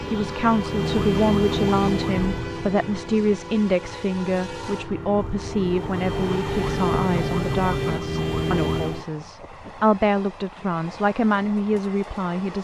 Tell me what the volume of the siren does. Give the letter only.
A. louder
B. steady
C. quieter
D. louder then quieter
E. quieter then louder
E.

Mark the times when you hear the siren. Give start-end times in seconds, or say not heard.
0.0-9.1.